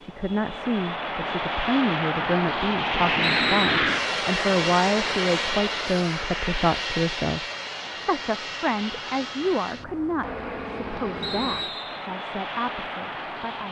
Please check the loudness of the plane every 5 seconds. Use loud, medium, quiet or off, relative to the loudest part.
loud, medium, medium.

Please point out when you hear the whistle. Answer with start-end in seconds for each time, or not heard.
3.2-3.9, 11.2-12.1.